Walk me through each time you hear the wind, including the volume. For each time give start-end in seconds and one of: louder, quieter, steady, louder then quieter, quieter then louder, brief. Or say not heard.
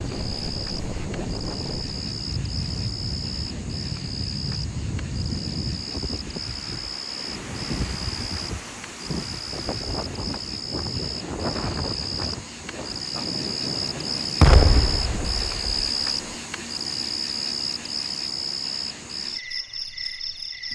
0.0-16.4 steady.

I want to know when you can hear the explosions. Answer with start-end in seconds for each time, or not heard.
14.4-15.9.